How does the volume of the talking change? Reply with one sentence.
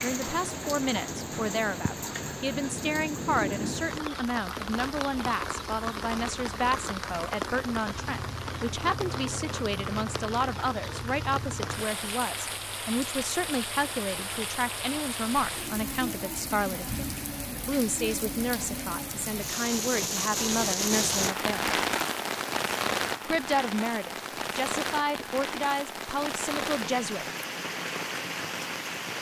The volume of the talking stays about the same.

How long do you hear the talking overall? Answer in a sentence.
The talking can be heard for 26 seconds in total.